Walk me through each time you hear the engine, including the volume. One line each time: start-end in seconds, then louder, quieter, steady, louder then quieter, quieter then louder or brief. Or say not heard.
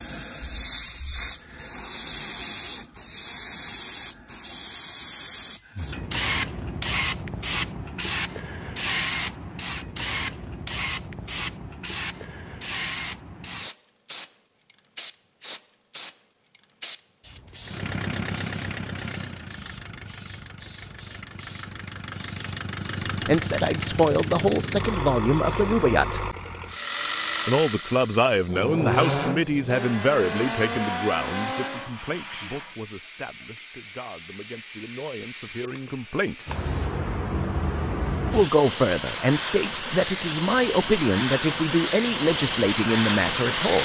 17.6-31.9 louder.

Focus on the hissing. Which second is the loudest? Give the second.
43 s.